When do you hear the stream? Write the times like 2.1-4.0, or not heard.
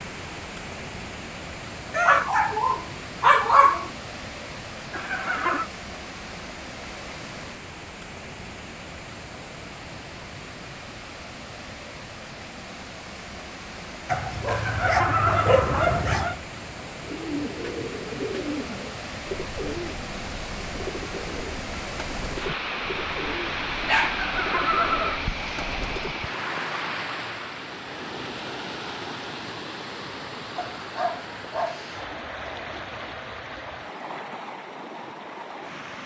0.0-36.0.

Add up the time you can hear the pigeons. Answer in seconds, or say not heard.
9 s.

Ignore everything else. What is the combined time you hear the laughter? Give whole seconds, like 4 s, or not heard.
3 s.